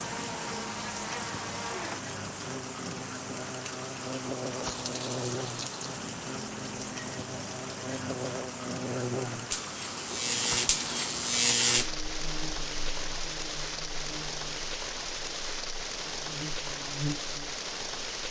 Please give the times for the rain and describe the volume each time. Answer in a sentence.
The rain can be heard from 0.0 to 18.2 s, at a steady volume.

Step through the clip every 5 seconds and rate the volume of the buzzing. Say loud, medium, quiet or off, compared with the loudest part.
medium, medium, loud, medium.